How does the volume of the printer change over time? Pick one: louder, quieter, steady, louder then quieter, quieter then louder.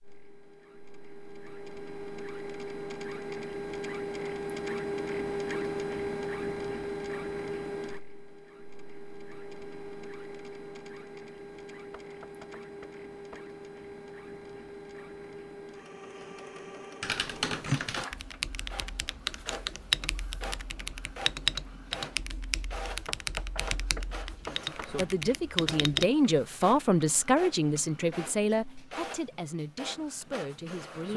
quieter.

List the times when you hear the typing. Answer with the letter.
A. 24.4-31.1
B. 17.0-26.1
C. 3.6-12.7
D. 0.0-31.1
B.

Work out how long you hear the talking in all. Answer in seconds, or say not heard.
7 s.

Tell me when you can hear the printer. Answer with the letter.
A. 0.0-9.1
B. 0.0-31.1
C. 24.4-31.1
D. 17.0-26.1
B.